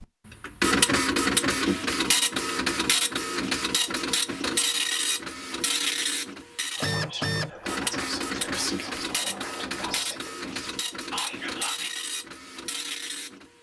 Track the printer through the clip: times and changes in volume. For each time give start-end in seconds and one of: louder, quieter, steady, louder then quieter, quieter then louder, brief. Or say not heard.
0.0-13.5 quieter.